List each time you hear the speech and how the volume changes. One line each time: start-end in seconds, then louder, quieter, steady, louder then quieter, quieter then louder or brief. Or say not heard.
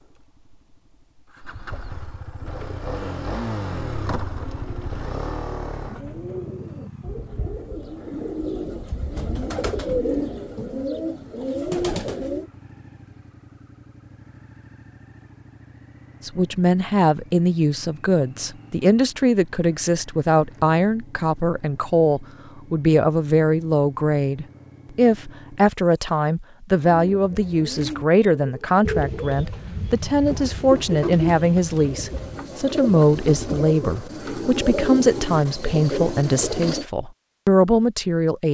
16.2-38.4 steady.